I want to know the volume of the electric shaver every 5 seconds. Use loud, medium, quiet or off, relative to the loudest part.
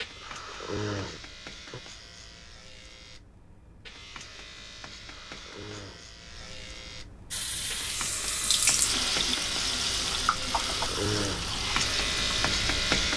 quiet, medium, loud.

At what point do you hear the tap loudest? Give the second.
9 s.